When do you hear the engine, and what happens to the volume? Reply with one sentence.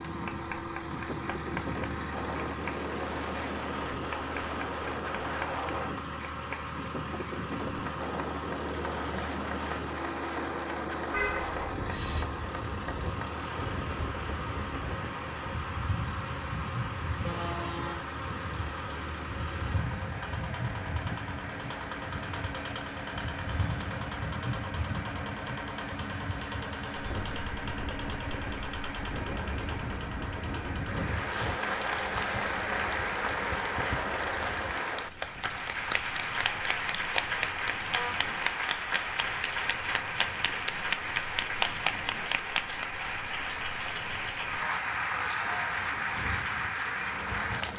The engine can be heard from 0.0 to 34.8 s, at a steady volume; and briefly from 46.1 to 47.7 s.